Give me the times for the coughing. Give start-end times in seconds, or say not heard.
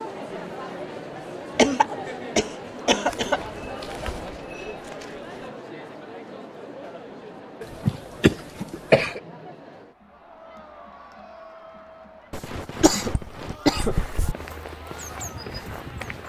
1.6-3.4, 7.6-9.2, 12.3-14.3.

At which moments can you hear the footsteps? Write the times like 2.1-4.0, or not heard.
3.0-5.5, 13.9-16.2.